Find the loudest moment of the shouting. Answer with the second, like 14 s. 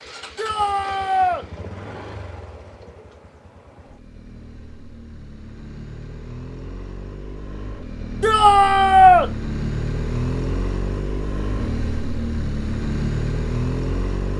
9 s.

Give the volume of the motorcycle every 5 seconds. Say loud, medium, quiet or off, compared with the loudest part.
quiet, medium, loud.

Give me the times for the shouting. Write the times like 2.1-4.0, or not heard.
0.3-1.4, 8.2-9.3.